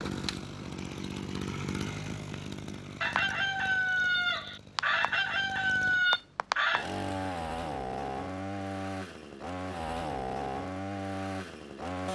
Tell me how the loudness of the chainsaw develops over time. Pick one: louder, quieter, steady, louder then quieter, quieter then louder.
quieter then louder.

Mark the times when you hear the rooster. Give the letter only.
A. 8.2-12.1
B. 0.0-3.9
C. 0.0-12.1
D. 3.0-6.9
D.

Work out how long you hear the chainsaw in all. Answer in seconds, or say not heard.
12 s.